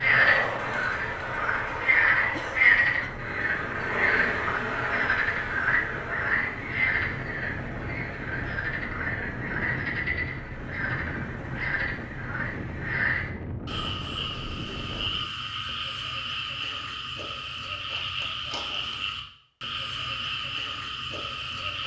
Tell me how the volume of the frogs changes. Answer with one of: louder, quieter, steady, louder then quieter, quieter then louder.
quieter.